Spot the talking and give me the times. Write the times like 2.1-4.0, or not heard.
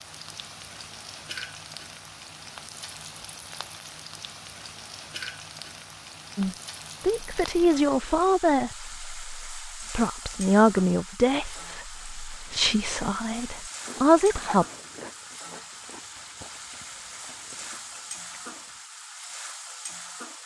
6.3-14.7.